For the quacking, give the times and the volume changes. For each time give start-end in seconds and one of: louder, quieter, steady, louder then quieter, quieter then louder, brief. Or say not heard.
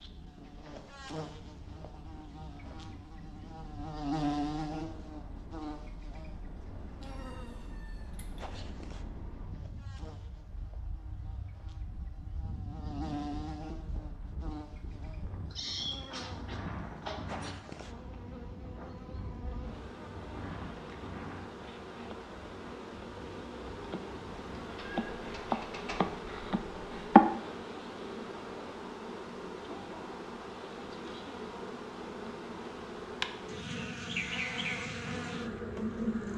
not heard.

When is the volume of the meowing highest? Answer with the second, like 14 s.
16 s.